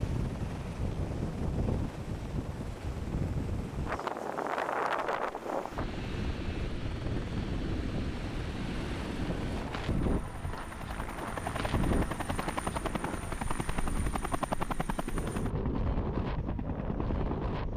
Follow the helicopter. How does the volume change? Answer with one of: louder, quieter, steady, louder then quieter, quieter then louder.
louder.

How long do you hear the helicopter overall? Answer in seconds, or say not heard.
18 s.